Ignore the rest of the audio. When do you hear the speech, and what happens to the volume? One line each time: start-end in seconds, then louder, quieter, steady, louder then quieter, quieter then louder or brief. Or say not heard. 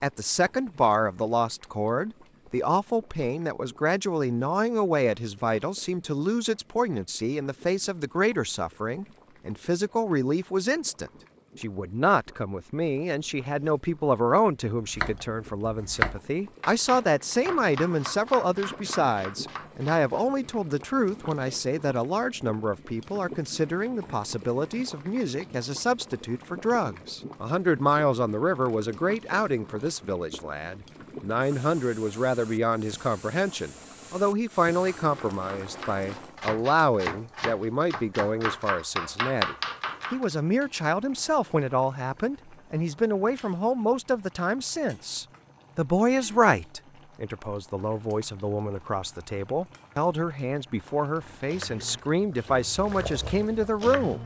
0.0-54.2 steady.